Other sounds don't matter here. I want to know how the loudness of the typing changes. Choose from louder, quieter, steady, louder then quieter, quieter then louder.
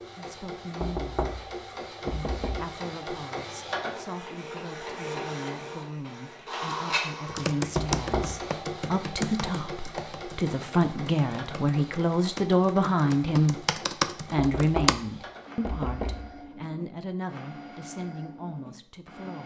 quieter then louder.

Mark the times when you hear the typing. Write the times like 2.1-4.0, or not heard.
7.2-14.9.